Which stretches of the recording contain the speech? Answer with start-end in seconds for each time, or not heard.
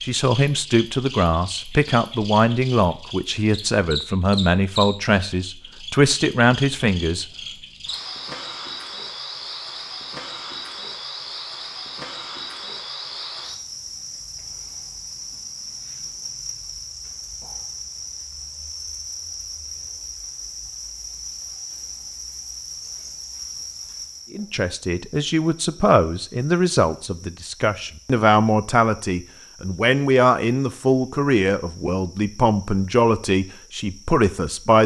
0.0-7.2, 24.3-34.8.